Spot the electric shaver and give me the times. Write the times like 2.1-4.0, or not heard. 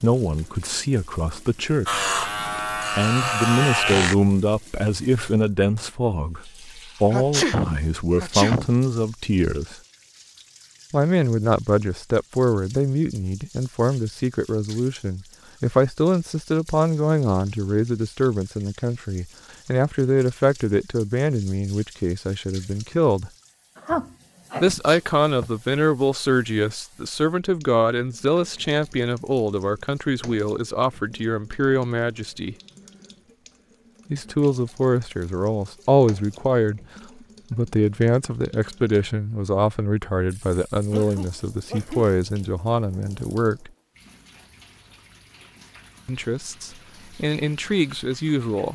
1.9-4.2.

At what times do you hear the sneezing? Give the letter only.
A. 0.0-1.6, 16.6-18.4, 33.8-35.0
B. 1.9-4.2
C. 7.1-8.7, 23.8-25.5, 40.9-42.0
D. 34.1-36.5
C.